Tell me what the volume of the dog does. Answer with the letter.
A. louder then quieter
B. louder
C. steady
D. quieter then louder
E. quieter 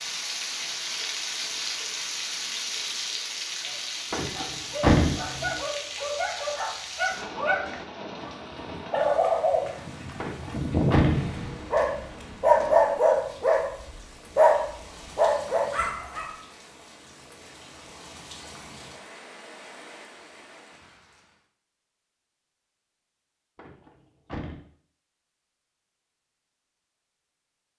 B.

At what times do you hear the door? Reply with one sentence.
You can hear the door from 4.1 to 5.6 s, from 10.2 to 11.7 s and from 23.6 to 24.6 s.